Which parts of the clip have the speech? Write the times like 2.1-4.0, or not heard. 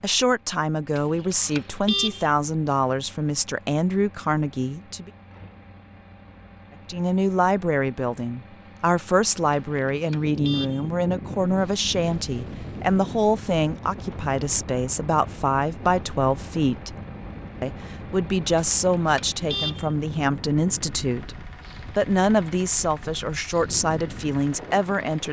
0.0-5.1, 6.8-16.9, 17.6-25.2.